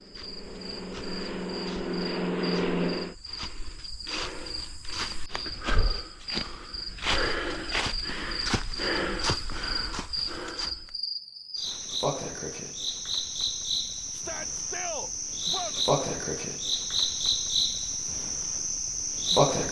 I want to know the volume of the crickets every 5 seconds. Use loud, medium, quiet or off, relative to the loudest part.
quiet, medium, medium, loud.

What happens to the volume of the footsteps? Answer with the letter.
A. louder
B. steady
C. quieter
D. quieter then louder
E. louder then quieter
A.